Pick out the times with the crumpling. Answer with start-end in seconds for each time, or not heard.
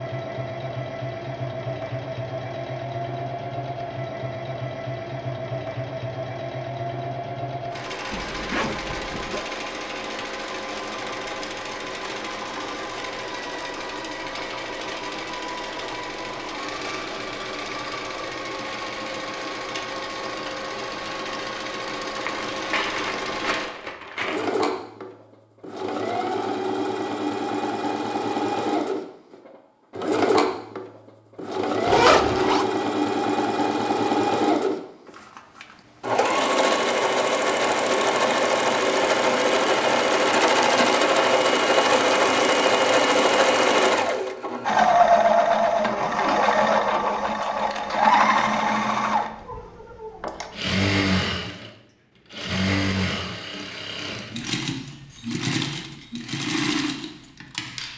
22.1-24.4.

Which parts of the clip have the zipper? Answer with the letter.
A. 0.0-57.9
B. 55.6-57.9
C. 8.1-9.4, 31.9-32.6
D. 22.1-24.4
C.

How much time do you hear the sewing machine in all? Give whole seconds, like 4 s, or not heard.
58 s.